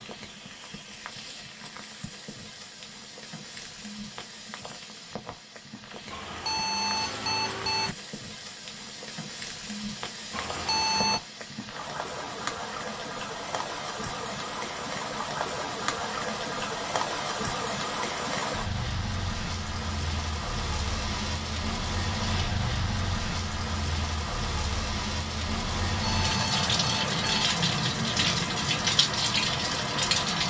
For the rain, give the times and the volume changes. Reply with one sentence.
The rain can be heard from 0.0 to 30.4 s, getting louder.